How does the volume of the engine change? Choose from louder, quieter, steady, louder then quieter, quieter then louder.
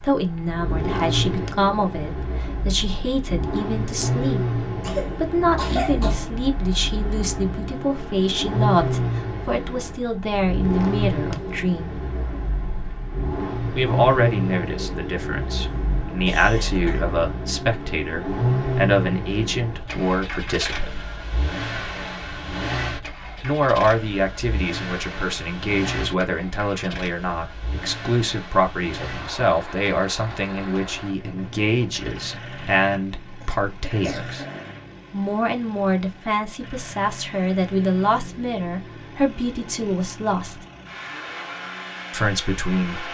quieter.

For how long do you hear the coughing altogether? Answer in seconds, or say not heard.
4 s.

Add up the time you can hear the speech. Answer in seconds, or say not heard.
37 s.